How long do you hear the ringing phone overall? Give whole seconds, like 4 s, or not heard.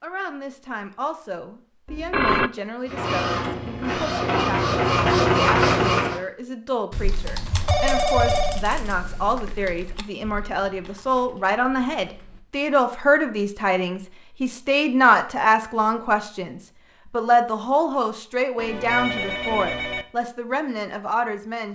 3 s.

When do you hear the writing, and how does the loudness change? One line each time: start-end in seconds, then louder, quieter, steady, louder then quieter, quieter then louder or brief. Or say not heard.
not heard.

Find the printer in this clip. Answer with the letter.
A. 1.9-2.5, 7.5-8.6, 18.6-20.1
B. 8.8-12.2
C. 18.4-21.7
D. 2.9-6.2
D.